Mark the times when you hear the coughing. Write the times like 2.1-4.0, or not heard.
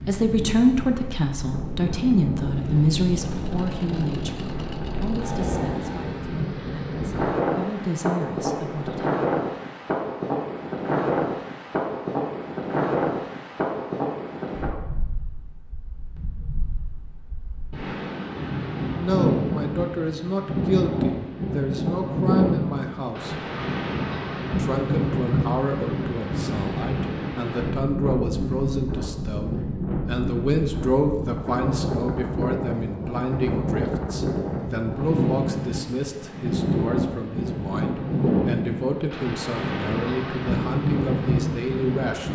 not heard.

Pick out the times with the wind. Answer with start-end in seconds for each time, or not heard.
0.0-42.3.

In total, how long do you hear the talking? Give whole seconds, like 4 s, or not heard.
31 s.